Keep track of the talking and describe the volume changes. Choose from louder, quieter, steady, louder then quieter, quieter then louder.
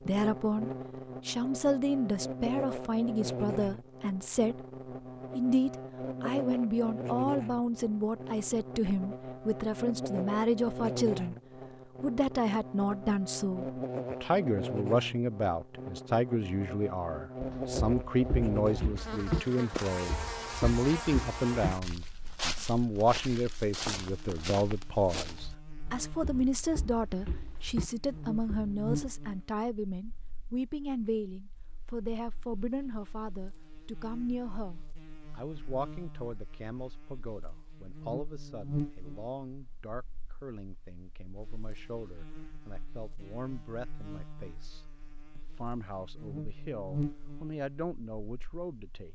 quieter.